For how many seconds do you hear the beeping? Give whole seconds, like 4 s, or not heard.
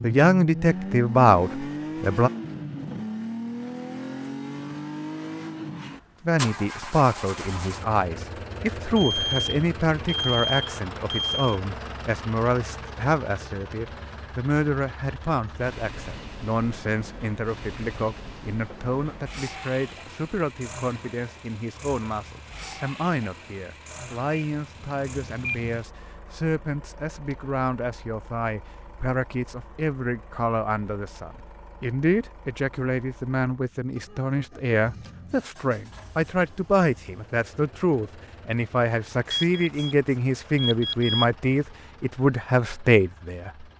6 s.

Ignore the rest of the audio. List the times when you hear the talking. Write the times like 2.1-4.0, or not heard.
0.0-2.3, 6.2-43.6.